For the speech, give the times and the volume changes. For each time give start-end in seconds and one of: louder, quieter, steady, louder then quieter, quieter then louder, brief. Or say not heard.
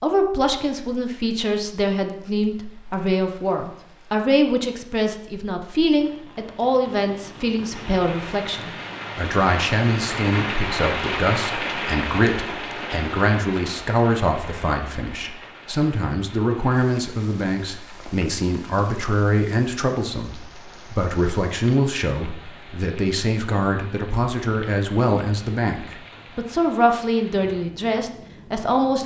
0.0-29.0 steady.